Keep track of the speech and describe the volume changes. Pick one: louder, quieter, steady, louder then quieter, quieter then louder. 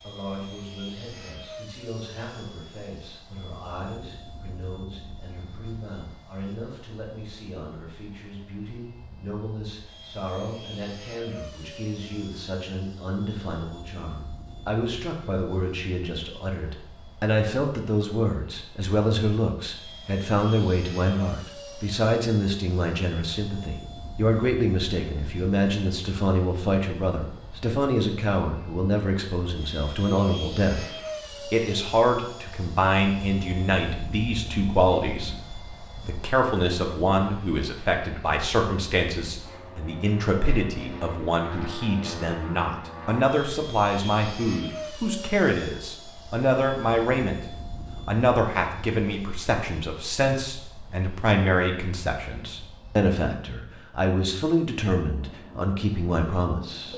louder.